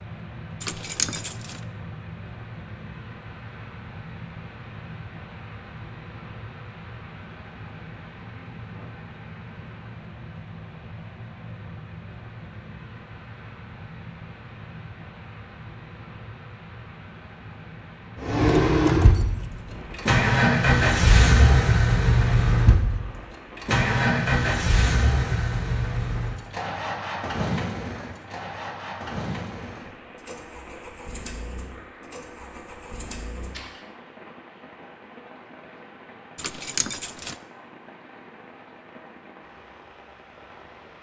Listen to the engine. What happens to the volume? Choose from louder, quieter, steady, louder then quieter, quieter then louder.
quieter.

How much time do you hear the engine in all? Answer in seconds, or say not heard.
16 s.